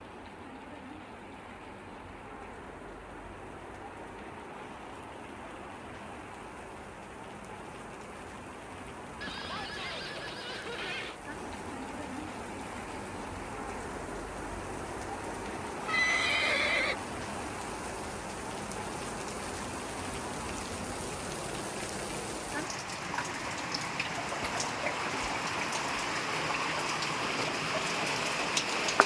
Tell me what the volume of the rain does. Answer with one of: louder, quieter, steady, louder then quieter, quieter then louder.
louder.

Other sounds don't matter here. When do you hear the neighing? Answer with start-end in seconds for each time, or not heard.
9.2-11.2, 15.8-16.9.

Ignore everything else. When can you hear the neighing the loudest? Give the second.
16 s.